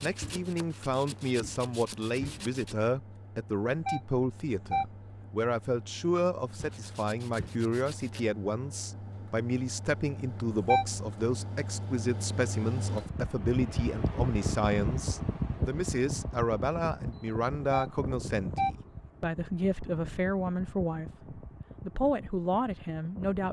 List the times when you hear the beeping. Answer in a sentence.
The beeping can be heard from 3.9 to 4.8 s, from 10.5 to 11.1 s and from 17.6 to 18.7 s.